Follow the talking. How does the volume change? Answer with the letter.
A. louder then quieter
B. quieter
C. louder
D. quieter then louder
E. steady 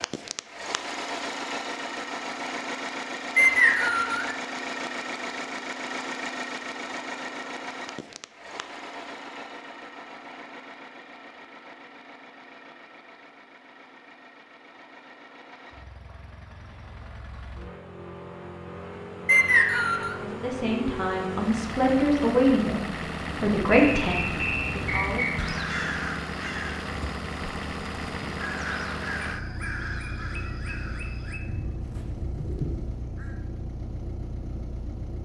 A.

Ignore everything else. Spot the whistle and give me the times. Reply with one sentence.
You can hear the whistle from 3.4 to 4.3 s, from 19.2 to 20.1 s and from 23.8 to 25.5 s.